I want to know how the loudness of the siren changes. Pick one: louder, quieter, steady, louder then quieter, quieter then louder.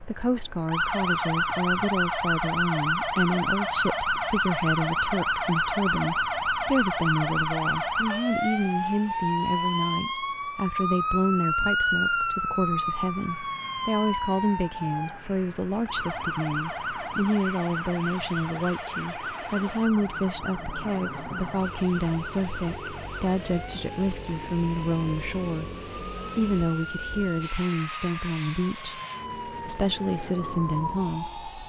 quieter.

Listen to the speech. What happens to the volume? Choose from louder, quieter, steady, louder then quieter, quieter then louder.
steady.